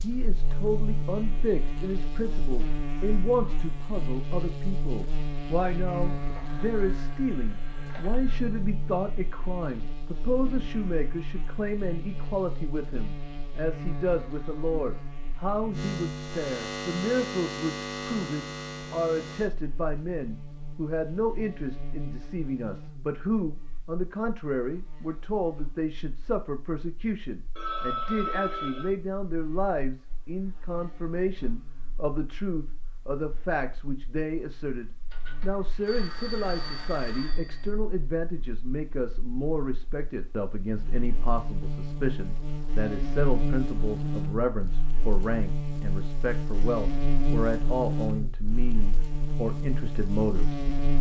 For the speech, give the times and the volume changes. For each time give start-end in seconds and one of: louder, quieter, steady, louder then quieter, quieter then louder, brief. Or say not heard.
0.0-50.9 steady.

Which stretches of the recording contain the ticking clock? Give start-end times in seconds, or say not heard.
not heard.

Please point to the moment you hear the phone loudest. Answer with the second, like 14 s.
28 s.